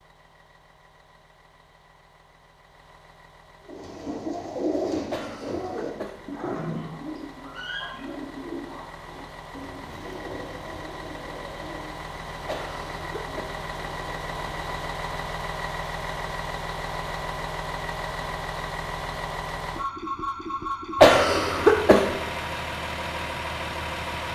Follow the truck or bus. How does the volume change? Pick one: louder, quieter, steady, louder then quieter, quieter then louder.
louder.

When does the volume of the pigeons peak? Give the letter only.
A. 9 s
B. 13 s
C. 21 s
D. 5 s
D.